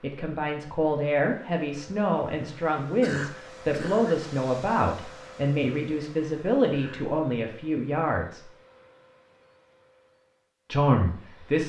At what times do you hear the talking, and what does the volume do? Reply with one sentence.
The talking can be heard from 0.0 to 8.4 s, at a steady volume; and briefly from 10.7 to 11.6 s.